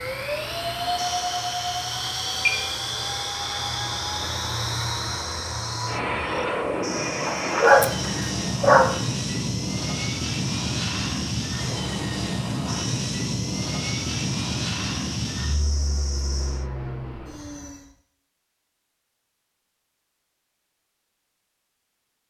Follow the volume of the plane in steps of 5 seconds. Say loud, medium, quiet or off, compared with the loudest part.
loud, loud, loud, medium, off.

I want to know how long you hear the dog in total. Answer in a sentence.
The dog can be heard for 2 seconds in total.